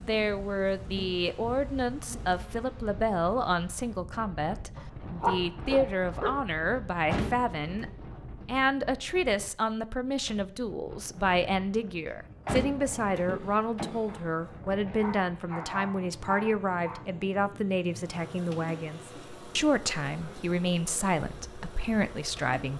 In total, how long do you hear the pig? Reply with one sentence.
The pig can't be heard in this clip.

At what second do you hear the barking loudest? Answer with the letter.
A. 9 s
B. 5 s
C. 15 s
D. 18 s
B.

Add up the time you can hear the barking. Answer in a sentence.
You can hear the barking for 5 seconds altogether.